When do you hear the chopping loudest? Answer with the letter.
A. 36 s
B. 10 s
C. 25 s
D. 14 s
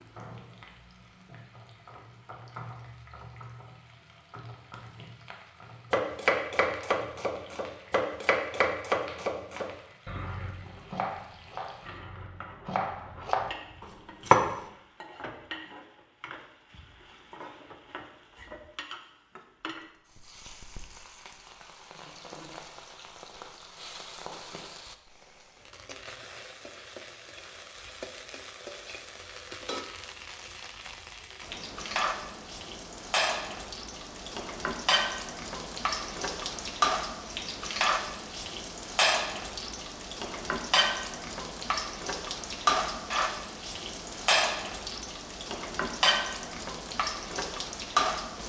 D.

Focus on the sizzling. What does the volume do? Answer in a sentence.
The volume of the sizzling goes up.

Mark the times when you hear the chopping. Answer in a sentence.
The chopping can be heard from 5.9 to 14.6 s.